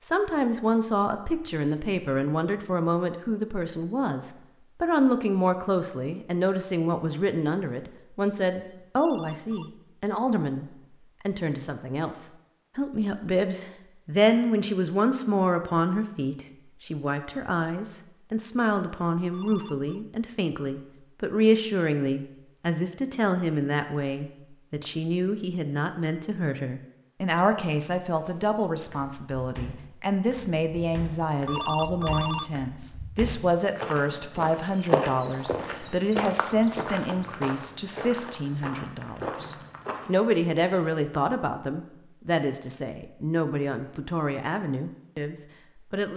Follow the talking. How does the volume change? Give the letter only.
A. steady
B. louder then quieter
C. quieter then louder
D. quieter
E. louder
A.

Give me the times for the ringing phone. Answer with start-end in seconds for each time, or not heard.
8.8-9.7, 19.2-20.0, 31.3-32.5.